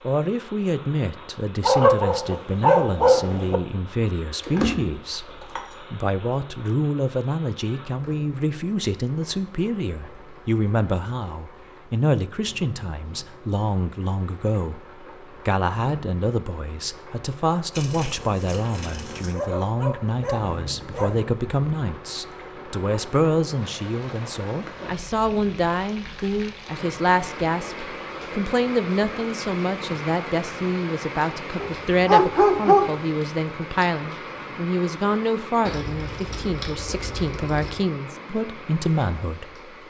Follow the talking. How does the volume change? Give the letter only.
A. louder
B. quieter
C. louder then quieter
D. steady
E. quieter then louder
D.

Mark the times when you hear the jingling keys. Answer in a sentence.
You can hear the jingling keys from 4.4 to 5.8 s, from 17.7 to 19.4 s and from 35.6 to 37.9 s.